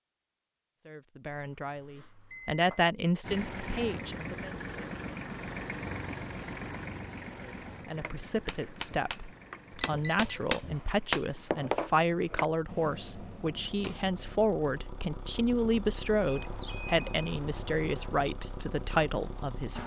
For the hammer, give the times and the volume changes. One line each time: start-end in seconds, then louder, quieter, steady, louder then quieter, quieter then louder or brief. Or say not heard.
7.9-14.4 louder then quieter.